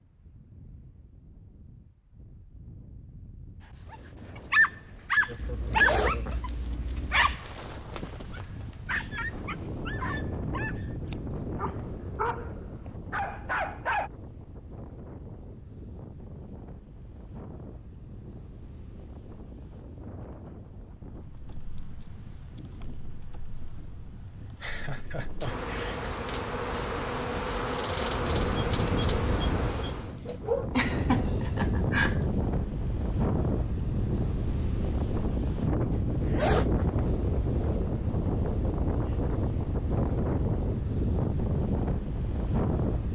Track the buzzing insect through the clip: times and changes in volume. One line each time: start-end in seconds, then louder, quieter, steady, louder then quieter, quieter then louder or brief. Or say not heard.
21.2-30.2 louder.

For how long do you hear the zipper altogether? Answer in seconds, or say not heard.
4 s.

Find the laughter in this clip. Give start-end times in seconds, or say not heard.
5.2-6.3, 24.6-26.0, 30.2-32.2.